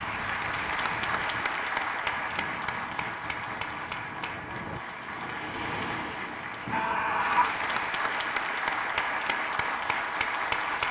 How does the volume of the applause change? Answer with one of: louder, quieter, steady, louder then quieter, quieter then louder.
quieter then louder.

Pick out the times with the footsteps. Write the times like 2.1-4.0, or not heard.
not heard.